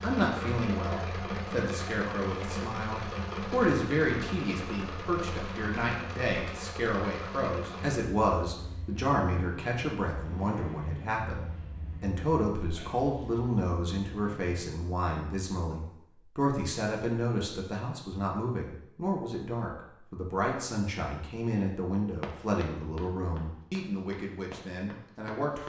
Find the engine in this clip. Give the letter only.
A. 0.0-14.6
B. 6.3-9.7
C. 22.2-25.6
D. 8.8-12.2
A.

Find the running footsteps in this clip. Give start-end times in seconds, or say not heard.
22.2-25.6.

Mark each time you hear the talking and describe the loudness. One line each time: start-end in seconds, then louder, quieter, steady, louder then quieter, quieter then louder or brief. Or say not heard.
0.0-25.6 steady.